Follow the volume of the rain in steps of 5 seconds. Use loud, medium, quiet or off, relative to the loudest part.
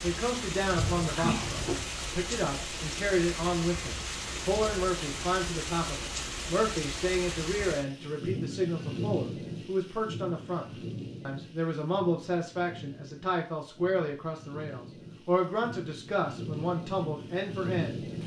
loud, loud, medium, loud.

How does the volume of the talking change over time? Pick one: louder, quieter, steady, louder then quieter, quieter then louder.
steady.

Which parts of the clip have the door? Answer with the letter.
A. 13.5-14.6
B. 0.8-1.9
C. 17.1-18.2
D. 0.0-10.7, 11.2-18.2
B.